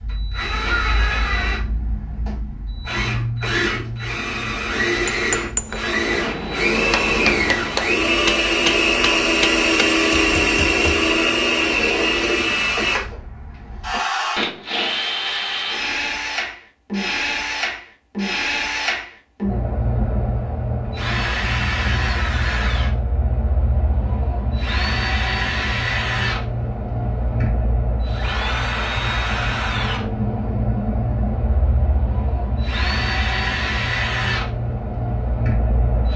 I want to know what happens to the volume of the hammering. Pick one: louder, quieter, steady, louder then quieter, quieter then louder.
quieter.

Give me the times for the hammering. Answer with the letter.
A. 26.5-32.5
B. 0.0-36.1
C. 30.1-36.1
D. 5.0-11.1
D.